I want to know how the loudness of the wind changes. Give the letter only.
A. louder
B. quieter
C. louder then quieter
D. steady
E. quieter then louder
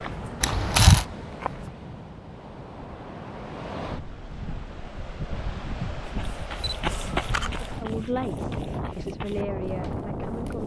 A.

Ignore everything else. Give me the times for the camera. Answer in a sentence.
The camera can be heard from 0.4 to 1.1 s and from 6.6 to 7.5 s.